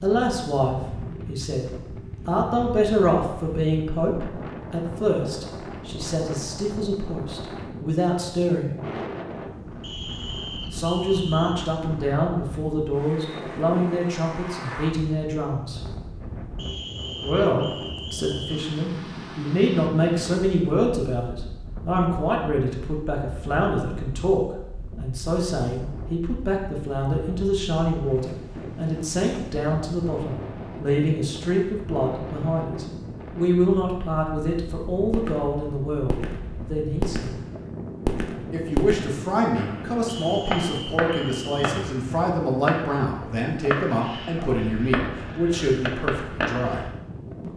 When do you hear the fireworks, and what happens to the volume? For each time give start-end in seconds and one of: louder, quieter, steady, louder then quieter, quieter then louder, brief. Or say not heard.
35.1-46.9 steady.